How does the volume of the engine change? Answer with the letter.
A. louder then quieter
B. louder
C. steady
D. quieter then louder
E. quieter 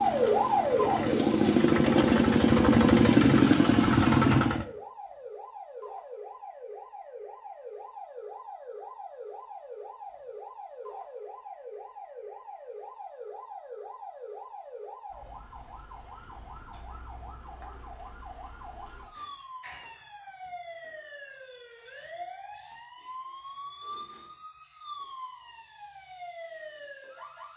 B.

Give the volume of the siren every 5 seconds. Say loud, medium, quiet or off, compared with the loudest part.
loud, quiet, quiet, quiet, quiet, quiet.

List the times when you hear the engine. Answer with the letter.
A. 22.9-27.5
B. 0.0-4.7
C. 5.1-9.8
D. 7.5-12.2
B.